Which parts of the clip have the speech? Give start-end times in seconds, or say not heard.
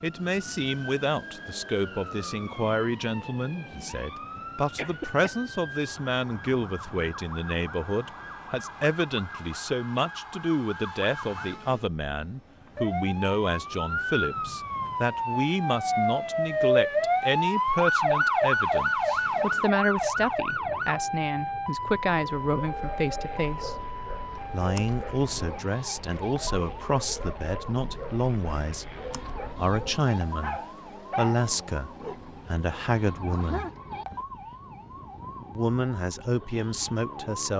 0.0-23.8, 24.5-28.9, 29.6-33.6, 35.5-37.5.